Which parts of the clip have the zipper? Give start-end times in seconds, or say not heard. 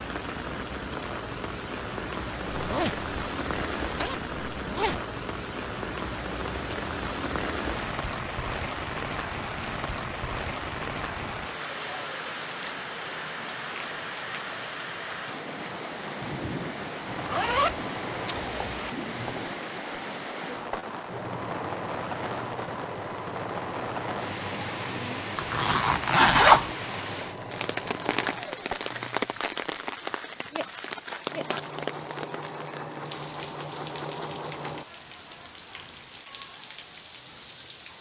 2.5-5.0, 17.1-18.9, 25.4-26.7.